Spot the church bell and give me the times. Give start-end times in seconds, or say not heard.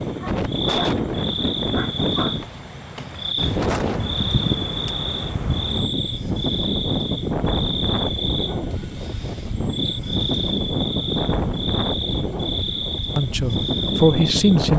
not heard.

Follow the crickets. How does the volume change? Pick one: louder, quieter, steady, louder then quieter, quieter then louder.
steady.